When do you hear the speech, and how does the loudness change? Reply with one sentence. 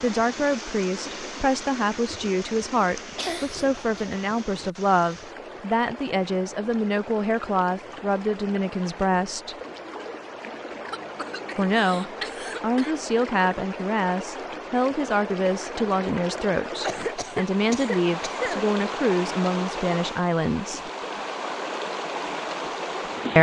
The speech can be heard from 0.0 to 9.6 s, at a steady volume; and from 11.6 to 20.9 s, at a steady volume.